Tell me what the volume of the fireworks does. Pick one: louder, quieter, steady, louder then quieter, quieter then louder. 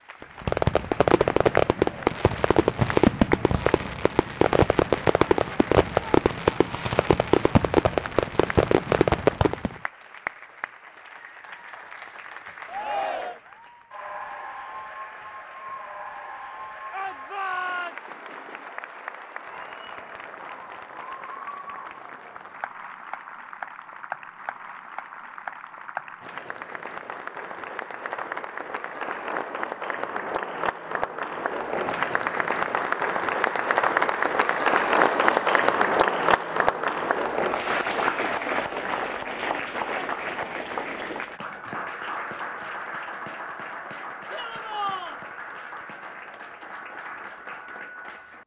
steady.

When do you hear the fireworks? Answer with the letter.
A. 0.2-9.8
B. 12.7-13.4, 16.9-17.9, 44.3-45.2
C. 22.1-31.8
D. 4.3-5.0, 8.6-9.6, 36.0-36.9
A.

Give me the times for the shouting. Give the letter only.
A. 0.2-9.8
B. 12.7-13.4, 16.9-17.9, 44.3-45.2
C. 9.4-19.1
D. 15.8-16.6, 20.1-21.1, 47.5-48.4
B.